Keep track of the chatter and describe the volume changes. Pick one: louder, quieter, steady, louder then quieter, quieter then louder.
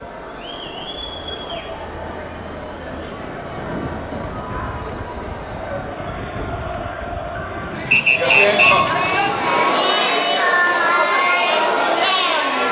louder.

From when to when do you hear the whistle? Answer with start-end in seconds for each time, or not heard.
7.9-8.8.